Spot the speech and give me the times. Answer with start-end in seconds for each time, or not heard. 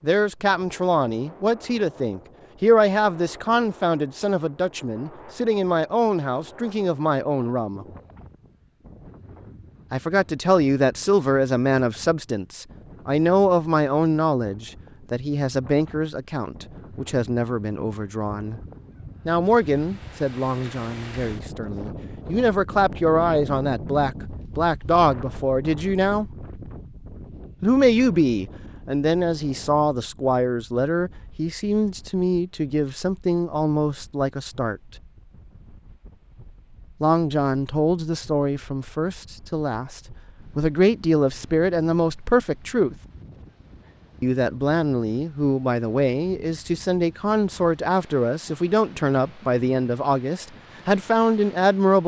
0.0-7.8, 9.9-18.6, 19.2-26.2, 27.6-34.8, 37.0-43.0, 44.2-52.0.